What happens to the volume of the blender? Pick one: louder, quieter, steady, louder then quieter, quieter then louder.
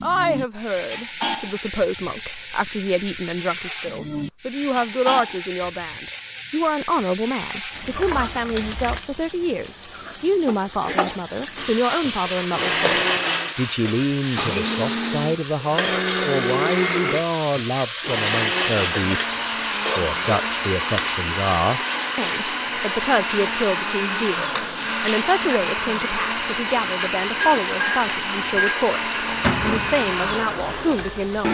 steady.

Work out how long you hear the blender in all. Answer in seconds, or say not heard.
20 s.